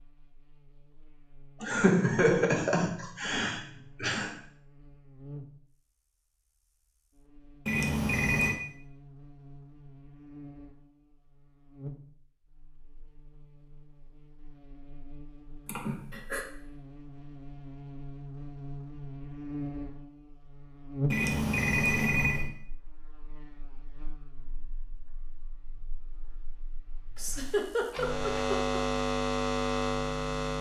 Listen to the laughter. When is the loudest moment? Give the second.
2 s.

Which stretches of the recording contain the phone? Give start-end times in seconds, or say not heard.
7.7-8.6, 21.1-22.5.